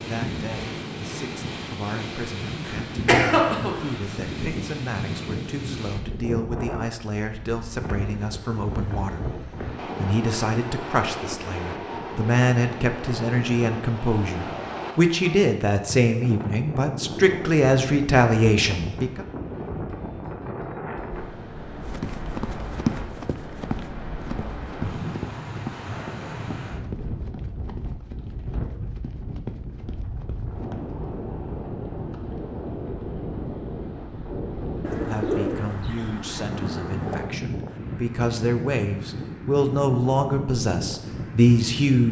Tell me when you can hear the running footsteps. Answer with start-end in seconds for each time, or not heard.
21.9-30.8.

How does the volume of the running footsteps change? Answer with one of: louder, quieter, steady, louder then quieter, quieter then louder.
quieter.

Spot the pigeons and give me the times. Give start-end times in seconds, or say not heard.
34.8-37.3.